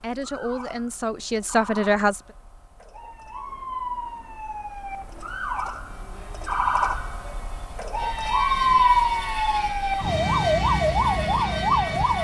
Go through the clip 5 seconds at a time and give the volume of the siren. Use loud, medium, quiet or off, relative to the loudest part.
quiet, loud, loud.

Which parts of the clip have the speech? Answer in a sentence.
You can hear the speech from 0.0 to 2.2 s.